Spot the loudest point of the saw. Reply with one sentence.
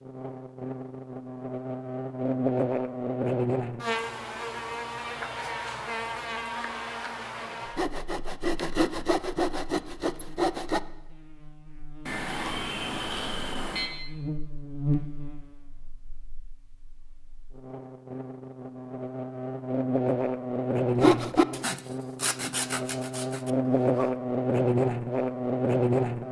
The volume of the saw peaks at 21 seconds.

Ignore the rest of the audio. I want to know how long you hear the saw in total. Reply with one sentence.
You can hear the saw for 6 seconds altogether.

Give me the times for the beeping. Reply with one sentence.
The beeping can be heard from 12.1 to 13.9 s.